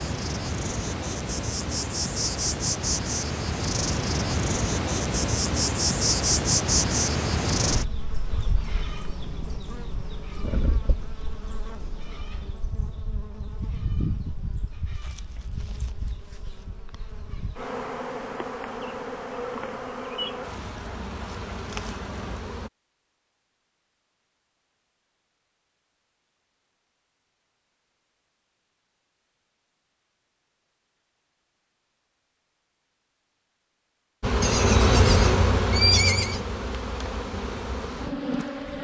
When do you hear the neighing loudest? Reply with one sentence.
The volume of the neighing peaks at 36 seconds.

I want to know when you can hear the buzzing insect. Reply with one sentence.
You can hear the buzzing insect from 0.0 to 22.7 s and from 34.2 to 38.7 s.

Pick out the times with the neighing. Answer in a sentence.
The neighing can be heard from 34.4 to 36.4 s.